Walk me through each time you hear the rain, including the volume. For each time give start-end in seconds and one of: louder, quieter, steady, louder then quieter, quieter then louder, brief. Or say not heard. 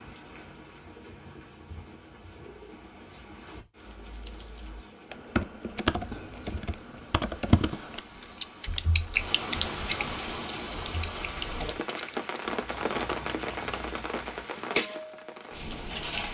0.0-16.3 louder.